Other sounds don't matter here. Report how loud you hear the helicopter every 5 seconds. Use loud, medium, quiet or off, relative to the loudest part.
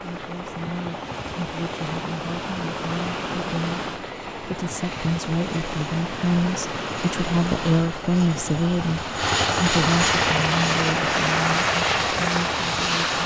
quiet, medium, loud.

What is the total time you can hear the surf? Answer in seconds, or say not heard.
13 s.